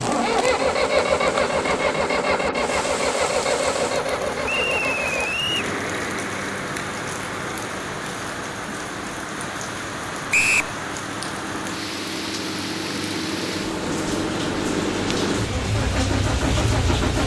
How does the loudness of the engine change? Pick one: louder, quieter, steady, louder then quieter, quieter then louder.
quieter then louder.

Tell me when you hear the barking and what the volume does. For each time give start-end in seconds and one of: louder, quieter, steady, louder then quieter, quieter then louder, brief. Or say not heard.
not heard.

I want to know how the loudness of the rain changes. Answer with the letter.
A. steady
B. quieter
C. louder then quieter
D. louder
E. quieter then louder
A.